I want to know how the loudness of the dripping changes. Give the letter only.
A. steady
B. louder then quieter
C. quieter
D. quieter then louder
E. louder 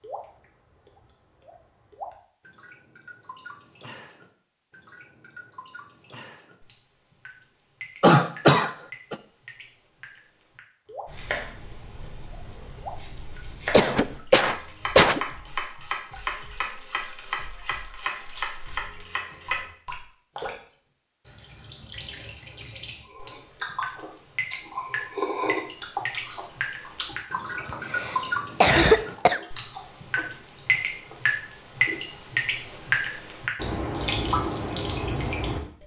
E.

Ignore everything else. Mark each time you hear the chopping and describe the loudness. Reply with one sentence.
You can hear the chopping from 11.1 to 19.7 s, getting louder.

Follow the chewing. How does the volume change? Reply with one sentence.
The volume of the chewing goes up, then down.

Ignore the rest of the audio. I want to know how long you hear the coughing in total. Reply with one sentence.
The coughing can be heard for 4 seconds in total.